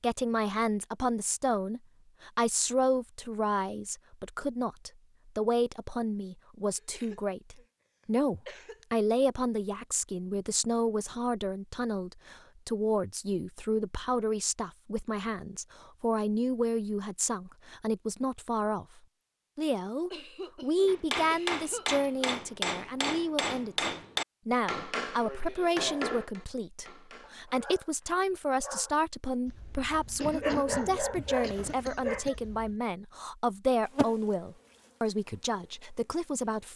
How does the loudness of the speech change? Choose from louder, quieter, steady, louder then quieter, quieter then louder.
steady.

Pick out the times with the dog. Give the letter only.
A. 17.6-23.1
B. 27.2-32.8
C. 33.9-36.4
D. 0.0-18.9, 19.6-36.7
B.